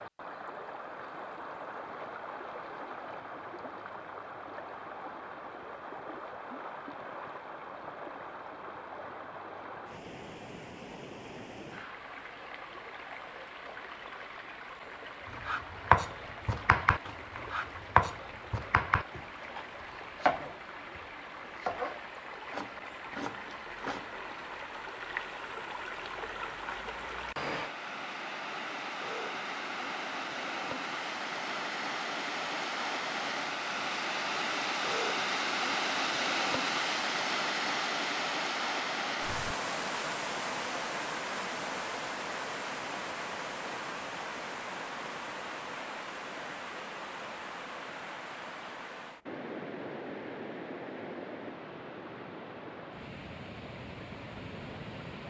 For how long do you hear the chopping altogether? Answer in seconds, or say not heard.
9 s.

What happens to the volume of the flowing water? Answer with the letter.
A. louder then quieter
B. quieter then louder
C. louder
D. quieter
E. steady
A.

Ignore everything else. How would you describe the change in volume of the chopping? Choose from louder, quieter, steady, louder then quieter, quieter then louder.
quieter.